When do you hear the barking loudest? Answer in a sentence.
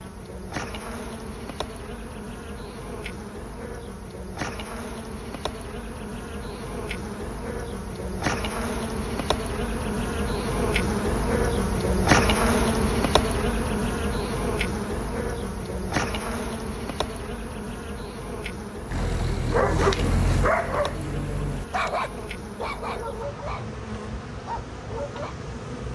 The loudest moment of the barking is at 20 seconds.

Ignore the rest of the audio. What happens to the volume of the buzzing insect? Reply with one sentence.
The volume of the buzzing insect goes up, then down.